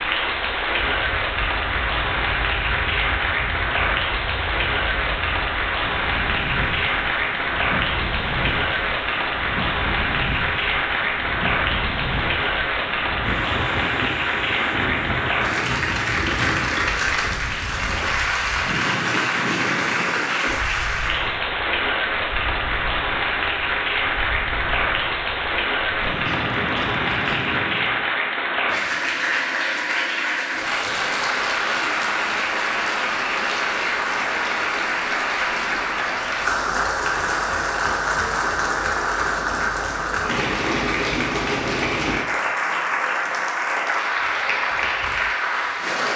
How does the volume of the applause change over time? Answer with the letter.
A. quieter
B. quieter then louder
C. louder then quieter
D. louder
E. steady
E.